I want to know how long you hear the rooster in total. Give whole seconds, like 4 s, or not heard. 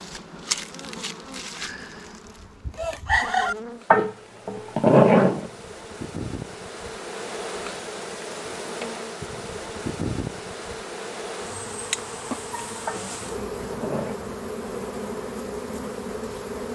2 s.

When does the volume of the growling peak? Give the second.
5 s.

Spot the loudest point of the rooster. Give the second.
3 s.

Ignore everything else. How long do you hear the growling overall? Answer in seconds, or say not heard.
3 s.